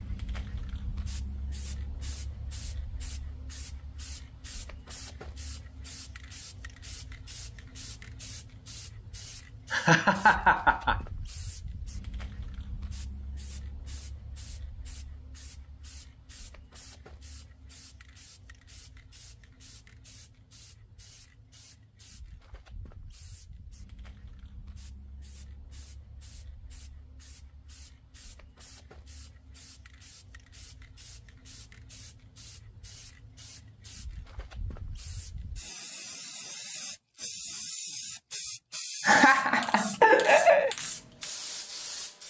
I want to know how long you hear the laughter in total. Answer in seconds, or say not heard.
3 s.